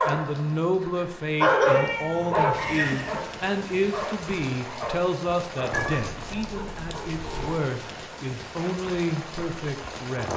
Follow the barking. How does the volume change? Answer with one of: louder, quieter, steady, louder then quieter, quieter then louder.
louder then quieter.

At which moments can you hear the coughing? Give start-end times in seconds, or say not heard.
not heard.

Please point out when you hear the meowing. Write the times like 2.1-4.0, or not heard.
1.6-3.2, 5.7-7.7.